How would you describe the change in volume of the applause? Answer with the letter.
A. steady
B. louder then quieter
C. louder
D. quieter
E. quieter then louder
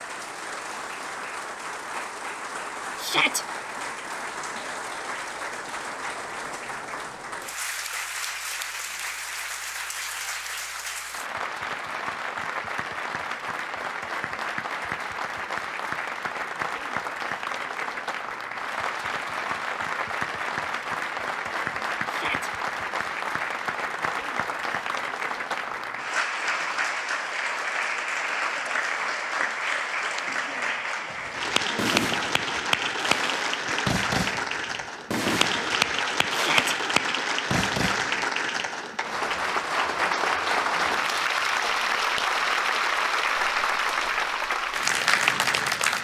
C.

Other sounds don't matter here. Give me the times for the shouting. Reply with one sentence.
You can hear the shouting from 3.0 to 3.5 s, from 22.1 to 22.5 s and from 36.3 to 36.8 s.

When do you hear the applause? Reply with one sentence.
The applause can be heard from 0.0 to 45.9 s.